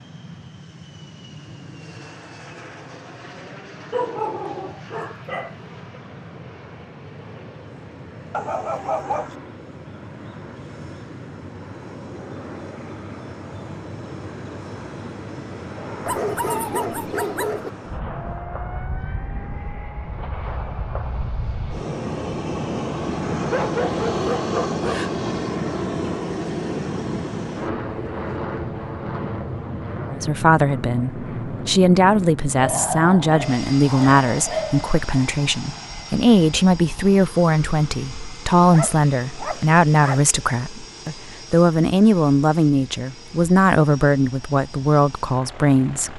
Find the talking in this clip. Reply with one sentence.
The talking can be heard from 30.1 to 46.1 s.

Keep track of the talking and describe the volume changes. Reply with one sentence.
The volume of the talking stays about the same.